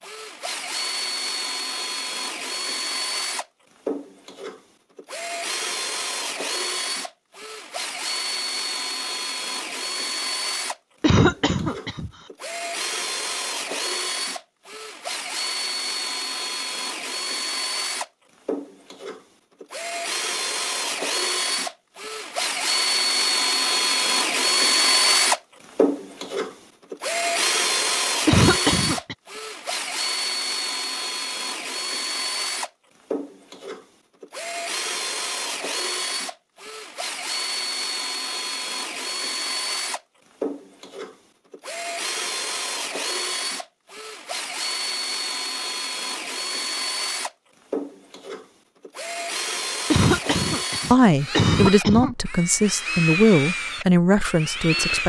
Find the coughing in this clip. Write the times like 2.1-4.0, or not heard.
11.0-12.1, 28.2-29.1, 49.9-52.1.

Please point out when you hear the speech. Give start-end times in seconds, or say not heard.
50.9-55.0.